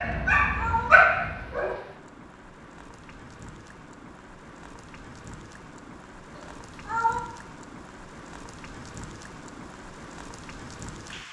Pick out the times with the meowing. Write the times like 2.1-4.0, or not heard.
0.1-0.9, 6.3-7.2.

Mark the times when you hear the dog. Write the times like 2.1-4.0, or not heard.
0.0-1.8.